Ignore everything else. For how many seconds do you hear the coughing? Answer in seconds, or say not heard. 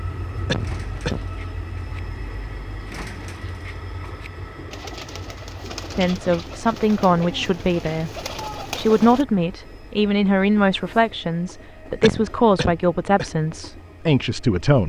2 s.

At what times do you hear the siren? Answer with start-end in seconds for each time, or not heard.
not heard.